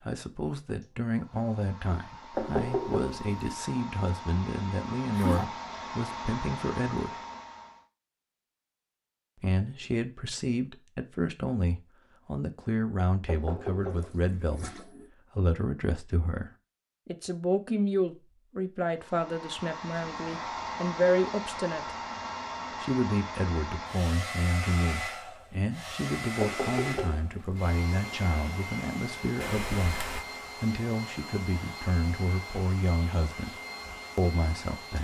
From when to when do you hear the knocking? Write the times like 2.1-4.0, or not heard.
2.3-3.3, 13.2-14.4, 26.4-27.6.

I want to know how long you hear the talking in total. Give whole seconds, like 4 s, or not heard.
32 s.